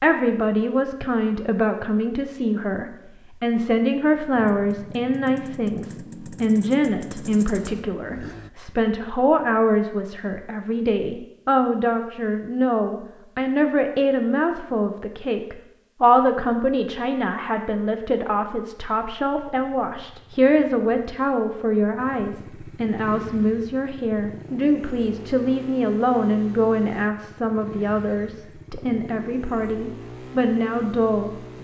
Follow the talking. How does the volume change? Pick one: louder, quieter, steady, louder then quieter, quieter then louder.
steady.